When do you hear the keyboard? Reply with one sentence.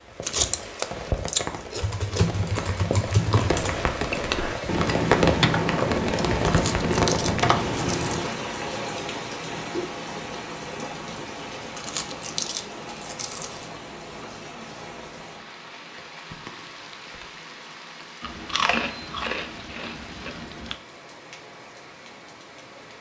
You can hear the keyboard from 1.8 to 8.2 s.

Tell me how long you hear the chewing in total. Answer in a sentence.
The chewing can be heard for 8 seconds in total.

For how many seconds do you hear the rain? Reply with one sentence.
The rain can be heard for 23 seconds in total.